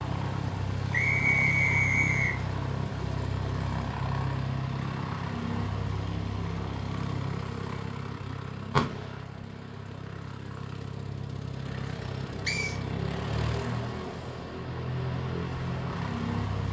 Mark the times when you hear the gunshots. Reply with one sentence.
The gunshots can be heard from 8.3 to 10.1 s.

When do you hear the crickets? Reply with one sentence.
The crickets can't be heard in this clip.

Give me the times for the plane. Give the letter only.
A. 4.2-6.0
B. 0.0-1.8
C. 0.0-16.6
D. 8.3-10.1
C.